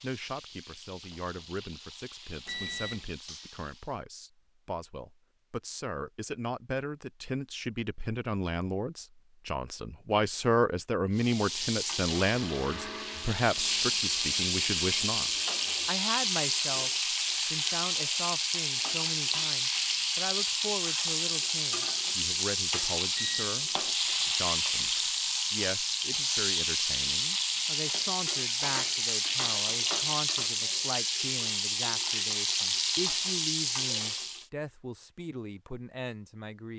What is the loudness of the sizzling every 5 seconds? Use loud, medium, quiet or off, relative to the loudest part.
quiet, off, loud, loud, loud, loud, loud, off.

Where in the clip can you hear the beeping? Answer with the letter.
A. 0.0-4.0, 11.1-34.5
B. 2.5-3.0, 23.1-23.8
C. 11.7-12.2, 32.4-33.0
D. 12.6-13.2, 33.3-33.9
B.